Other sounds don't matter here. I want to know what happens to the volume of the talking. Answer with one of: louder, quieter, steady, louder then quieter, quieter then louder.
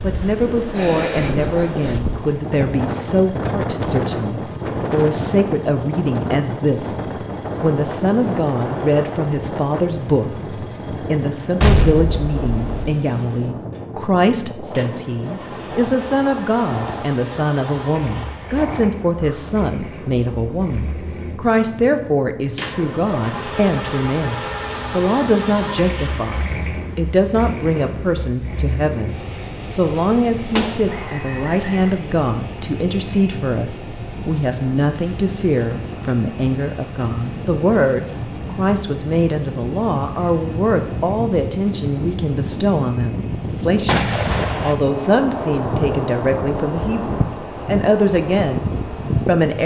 steady.